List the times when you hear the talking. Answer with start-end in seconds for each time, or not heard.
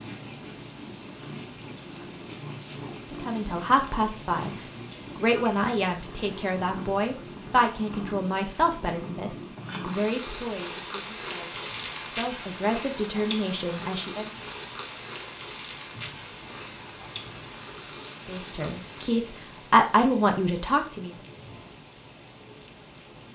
3.1-14.3, 18.2-21.1.